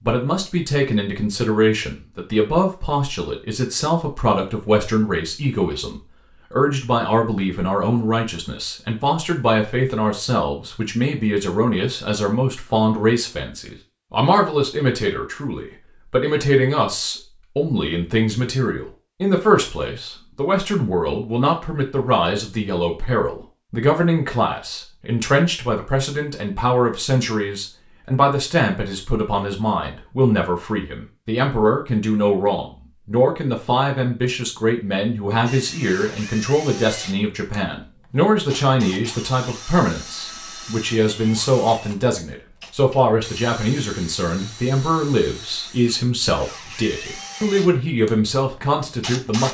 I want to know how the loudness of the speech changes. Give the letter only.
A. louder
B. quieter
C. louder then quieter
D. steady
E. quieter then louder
D.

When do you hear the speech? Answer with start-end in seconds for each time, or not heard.
0.0-49.4.